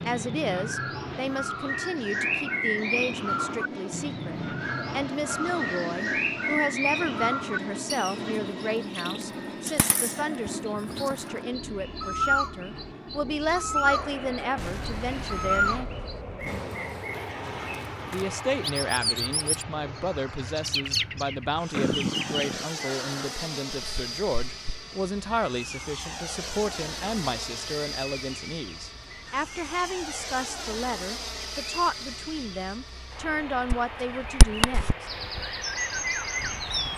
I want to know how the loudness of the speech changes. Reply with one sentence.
The loudness of the speech stays about the same.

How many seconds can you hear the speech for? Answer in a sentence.
You can hear the speech for 33 seconds altogether.